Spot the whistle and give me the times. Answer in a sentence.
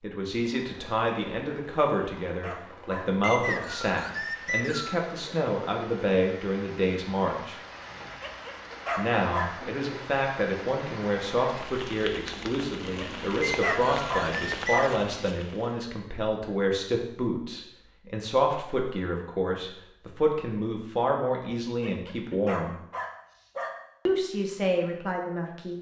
You can hear the whistle from 3.2 to 5.0 s and from 13.4 to 15.0 s.